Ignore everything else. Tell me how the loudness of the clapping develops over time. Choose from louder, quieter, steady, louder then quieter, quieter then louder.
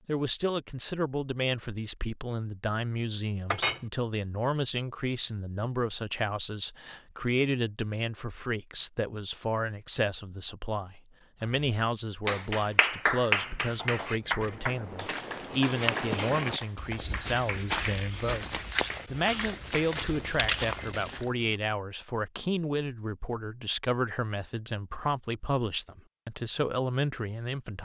quieter.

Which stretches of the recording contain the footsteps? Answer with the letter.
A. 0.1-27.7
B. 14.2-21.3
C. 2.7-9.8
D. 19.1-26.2
B.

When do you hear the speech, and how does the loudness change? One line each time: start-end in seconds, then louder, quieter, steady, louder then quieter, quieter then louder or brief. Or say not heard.
0.1-27.7 steady.